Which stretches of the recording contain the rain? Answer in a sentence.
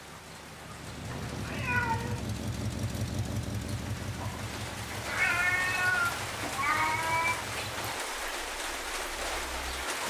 The rain can be heard from 0.0 to 10.0 s.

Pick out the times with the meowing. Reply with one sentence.
The meowing can be heard from 1.1 to 2.2 s and from 5.0 to 7.4 s.